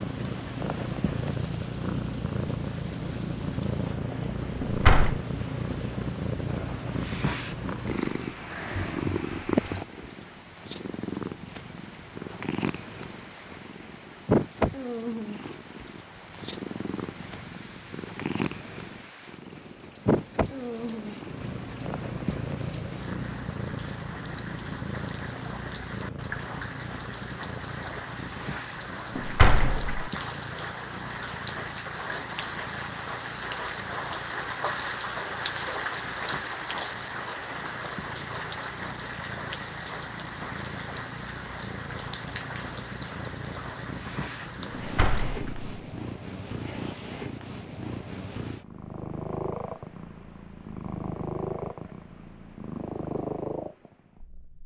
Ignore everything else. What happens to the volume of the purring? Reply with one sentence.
The volume of the purring goes down, then up.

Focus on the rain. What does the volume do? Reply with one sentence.
The volume of the rain goes up.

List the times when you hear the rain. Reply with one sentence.
You can hear the rain from 0.0 to 45.2 s.